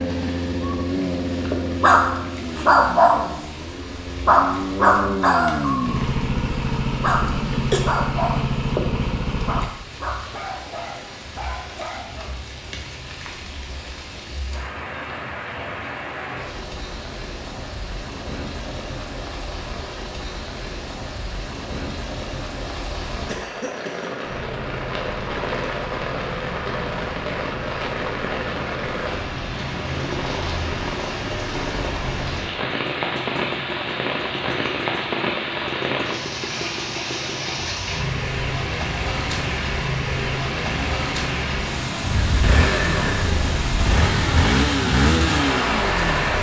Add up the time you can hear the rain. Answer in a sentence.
You can hear the rain for 46 seconds altogether.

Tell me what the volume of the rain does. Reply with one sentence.
The volume of the rain goes up.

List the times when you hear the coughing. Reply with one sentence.
The coughing can be heard from 7.2 to 7.8 s and from 23.2 to 24.2 s.